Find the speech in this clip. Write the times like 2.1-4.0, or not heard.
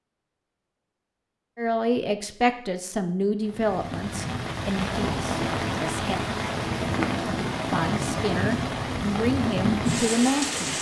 1.6-6.2, 7.7-10.7.